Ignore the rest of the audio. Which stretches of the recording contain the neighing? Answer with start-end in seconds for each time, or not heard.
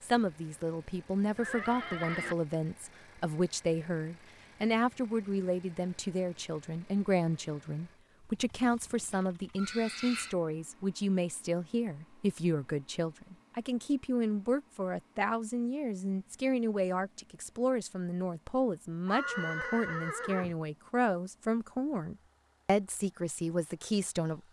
1.4-2.4, 8.2-10.3, 19.1-20.6.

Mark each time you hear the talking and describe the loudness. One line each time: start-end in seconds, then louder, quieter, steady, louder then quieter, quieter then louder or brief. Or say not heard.
0.0-24.4 steady.